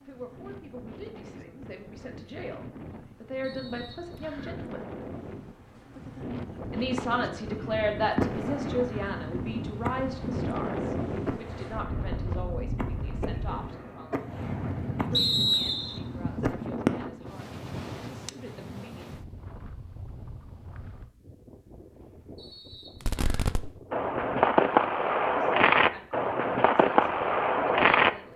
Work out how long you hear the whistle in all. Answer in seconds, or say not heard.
3 s.